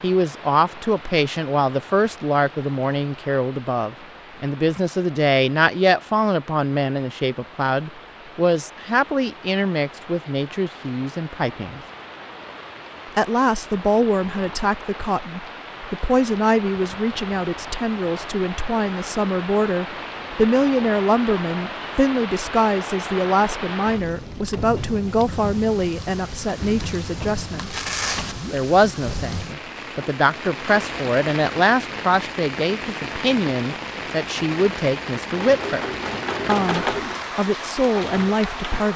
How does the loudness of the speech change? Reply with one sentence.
The volume of the speech stays about the same.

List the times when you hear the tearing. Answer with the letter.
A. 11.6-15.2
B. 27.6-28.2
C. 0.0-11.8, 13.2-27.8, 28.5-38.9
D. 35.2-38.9
B.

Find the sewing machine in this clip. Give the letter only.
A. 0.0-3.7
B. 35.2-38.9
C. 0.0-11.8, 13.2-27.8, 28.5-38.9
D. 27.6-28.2
B.